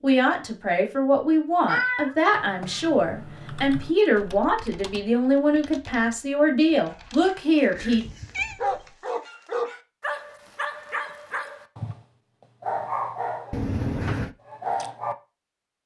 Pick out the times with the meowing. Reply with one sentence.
You can hear the meowing from 1.6 to 2.8 s, from 7.8 to 8.6 s and from 13.5 to 14.3 s.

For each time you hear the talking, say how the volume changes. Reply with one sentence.
You can hear the talking from 0.0 to 8.1 s, at a steady volume.